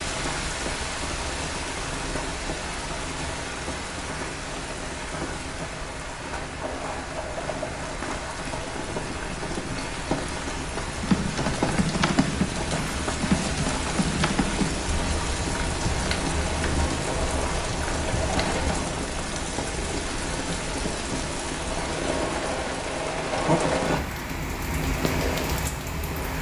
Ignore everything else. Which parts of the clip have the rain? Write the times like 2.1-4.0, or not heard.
0.0-26.3.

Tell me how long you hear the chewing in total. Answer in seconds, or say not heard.
not heard.